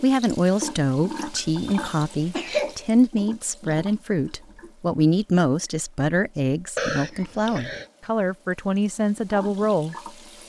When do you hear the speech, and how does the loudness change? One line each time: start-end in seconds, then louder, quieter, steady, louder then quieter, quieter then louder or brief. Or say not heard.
0.0-9.9 steady.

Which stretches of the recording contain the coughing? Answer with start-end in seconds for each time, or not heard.
1.6-2.8, 6.8-7.8.